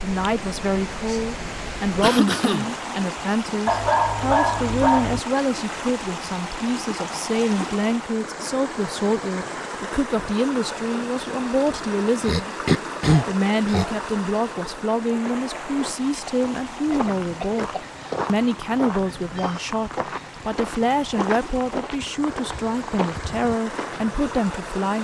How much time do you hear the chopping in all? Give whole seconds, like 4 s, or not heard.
not heard.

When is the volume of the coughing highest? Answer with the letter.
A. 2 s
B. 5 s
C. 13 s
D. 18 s
C.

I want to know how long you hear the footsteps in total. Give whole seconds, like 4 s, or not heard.
9 s.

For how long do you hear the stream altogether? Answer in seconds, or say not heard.
25 s.